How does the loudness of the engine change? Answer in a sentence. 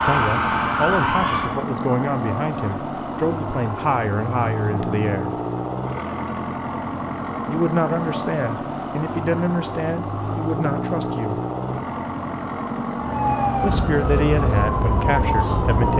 The volume of the engine stays about the same.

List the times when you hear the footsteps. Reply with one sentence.
The footsteps can't be heard in this clip.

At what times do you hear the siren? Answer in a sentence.
You can hear the siren from 0.0 to 1.6 s and from 12.9 to 15.9 s.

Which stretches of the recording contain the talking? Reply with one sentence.
The talking can be heard from 0.0 to 5.3 s, from 7.5 to 11.4 s and from 13.6 to 15.9 s.